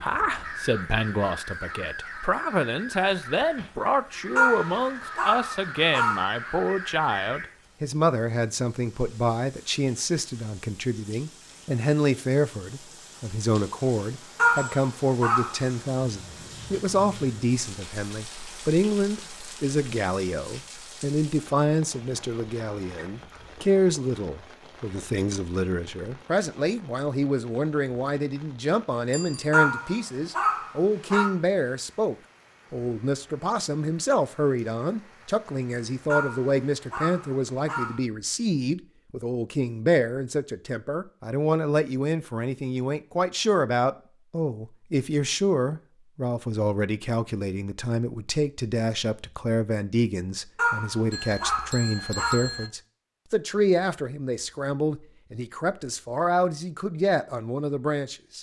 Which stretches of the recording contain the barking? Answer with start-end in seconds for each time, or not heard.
4.3-6.2, 14.3-15.7, 29.5-31.3, 36.1-38.0, 50.5-52.4.